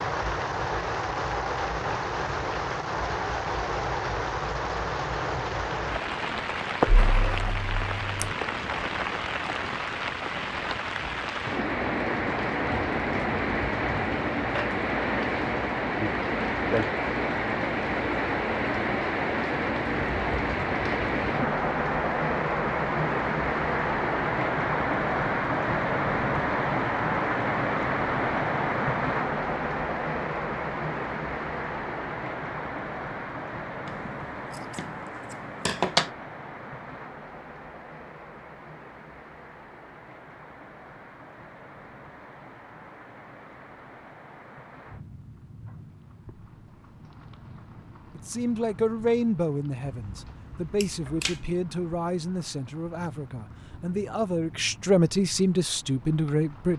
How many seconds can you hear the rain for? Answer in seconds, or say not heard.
57 s.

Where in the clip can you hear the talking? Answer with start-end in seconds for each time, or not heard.
48.1-56.7.